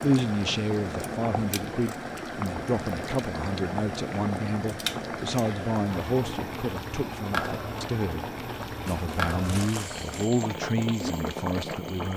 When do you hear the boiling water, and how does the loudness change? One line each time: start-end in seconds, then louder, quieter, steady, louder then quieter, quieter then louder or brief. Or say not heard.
0.0-12.1 steady.